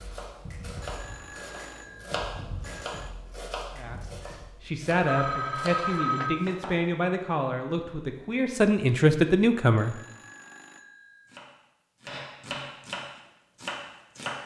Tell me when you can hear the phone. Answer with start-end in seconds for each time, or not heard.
0.8-3.1, 5.0-6.5, 9.8-11.3.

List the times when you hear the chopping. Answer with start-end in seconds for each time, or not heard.
0.0-7.0, 11.2-14.4.